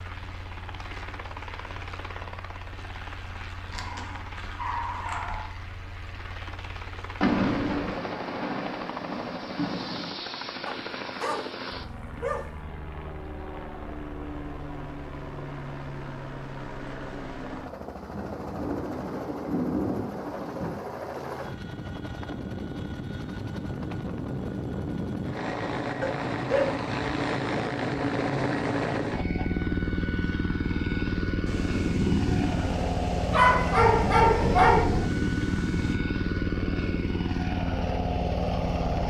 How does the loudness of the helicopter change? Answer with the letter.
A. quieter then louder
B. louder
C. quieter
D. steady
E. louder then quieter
B.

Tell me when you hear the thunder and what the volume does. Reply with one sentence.
The thunder can be heard briefly from 7.2 to 10.1 s; briefly from 18.1 to 20.8 s; and from 31.4 to 36.0 s, getting quieter then louder.